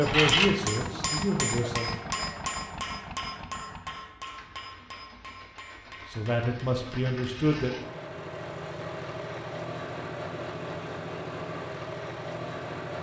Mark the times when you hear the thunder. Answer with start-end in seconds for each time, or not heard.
not heard.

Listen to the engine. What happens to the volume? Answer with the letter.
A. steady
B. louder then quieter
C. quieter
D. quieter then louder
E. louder
D.